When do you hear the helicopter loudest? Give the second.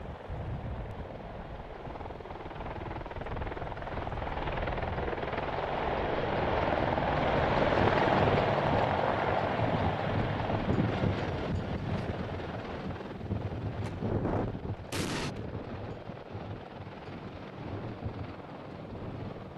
8 s.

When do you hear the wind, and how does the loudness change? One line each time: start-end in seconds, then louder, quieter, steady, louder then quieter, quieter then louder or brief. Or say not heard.
0.0-19.5 louder then quieter.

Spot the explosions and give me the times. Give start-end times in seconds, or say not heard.
14.9-15.3.